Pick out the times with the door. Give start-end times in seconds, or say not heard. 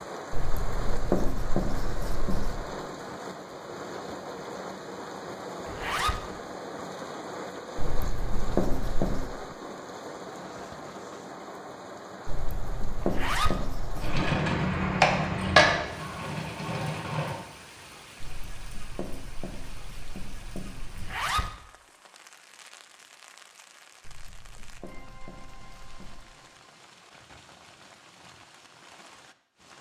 not heard.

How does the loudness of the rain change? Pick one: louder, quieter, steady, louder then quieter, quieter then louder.
quieter.